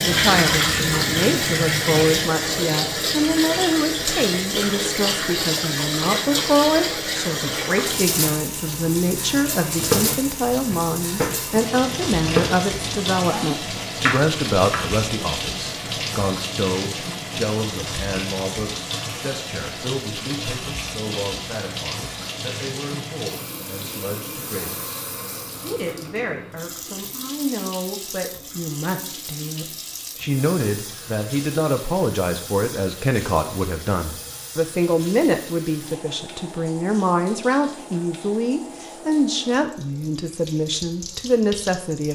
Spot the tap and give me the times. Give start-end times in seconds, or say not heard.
0.0-42.0.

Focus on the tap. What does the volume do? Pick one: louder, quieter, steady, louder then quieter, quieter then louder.
quieter.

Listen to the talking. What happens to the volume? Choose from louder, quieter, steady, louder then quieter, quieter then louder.
quieter then louder.